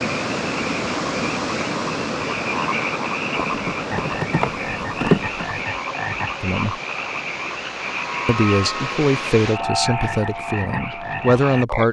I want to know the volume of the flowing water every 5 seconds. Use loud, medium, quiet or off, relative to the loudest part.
loud, medium, off.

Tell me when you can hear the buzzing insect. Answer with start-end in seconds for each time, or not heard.
3.4-5.7.